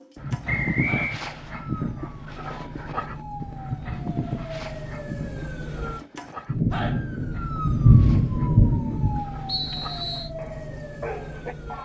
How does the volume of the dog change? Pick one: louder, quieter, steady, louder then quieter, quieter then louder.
quieter.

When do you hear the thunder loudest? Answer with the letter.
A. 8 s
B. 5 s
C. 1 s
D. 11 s
A.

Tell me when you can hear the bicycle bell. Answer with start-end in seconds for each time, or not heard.
not heard.